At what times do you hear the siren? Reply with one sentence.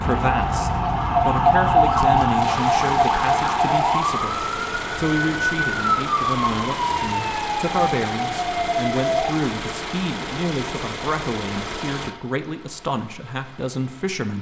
The siren can be heard from 0.0 to 9.3 s.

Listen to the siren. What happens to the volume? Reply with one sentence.
The loudness of the siren goes down.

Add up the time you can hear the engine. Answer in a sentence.
The engine can be heard for 14 seconds in total.